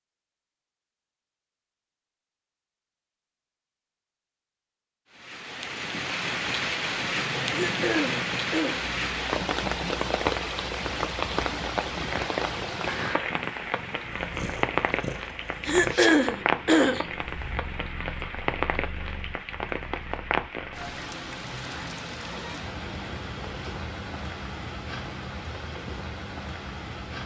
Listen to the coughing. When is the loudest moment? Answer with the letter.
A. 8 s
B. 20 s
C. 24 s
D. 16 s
D.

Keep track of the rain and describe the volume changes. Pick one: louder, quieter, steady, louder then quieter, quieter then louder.
quieter.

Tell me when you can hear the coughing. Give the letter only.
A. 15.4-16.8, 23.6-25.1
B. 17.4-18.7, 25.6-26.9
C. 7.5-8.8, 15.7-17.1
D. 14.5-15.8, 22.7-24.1
C.